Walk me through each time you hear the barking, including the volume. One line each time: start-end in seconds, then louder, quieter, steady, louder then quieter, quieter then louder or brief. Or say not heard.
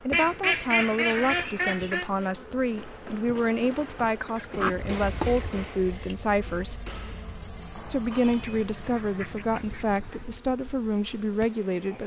not heard.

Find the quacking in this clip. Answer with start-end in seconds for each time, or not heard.
0.1-2.1, 4.2-6.2, 8.2-10.2.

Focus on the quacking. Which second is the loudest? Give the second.
1 s.